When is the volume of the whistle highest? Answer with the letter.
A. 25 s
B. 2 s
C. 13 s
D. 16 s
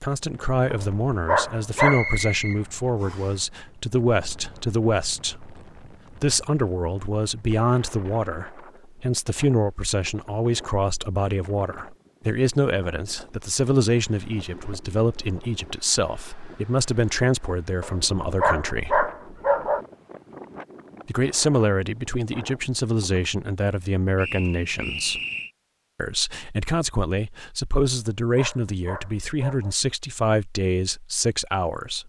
B.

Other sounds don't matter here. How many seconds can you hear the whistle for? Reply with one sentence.
You can hear the whistle for 3 seconds altogether.